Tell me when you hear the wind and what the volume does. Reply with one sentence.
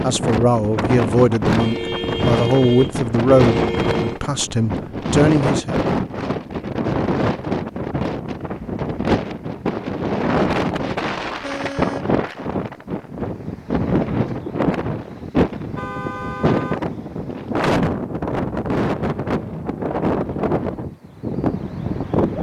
The wind can be heard from 0.0 to 22.3 s, at a steady volume.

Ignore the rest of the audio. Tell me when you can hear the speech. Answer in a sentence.
You can hear the speech from 0.0 to 5.8 s.